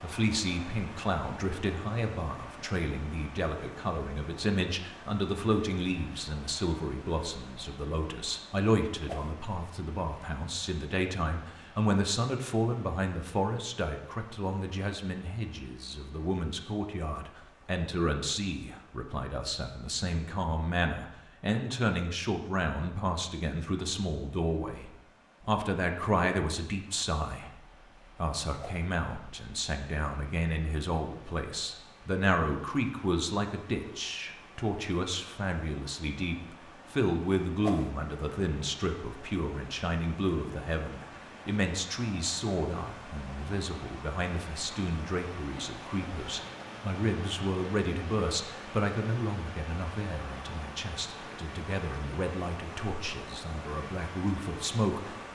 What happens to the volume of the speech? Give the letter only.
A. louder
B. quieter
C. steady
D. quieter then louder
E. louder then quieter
C.